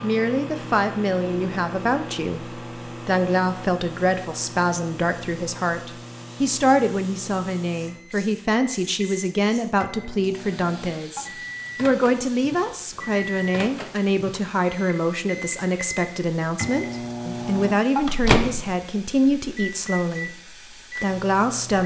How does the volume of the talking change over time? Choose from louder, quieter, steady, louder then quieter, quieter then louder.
steady.